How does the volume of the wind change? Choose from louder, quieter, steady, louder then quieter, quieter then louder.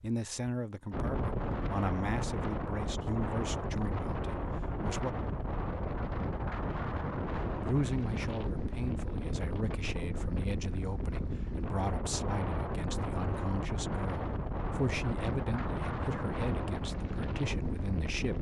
steady.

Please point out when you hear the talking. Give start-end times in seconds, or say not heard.
0.0-5.2, 7.5-18.3.